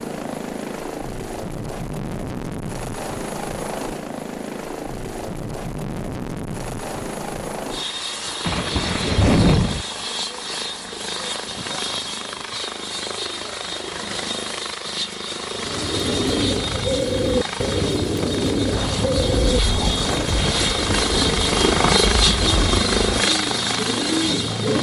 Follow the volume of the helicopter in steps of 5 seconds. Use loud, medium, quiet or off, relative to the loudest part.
medium, medium, medium, medium, loud.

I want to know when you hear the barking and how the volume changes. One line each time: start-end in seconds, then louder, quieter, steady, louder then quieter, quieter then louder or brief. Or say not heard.
not heard.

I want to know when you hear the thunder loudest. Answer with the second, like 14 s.
9 s.